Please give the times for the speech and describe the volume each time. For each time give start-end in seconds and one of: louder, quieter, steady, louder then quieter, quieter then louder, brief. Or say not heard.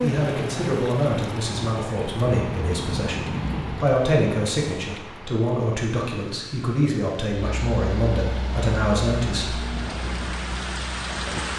0.0-9.6 steady.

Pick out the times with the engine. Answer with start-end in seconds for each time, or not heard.
7.3-11.5.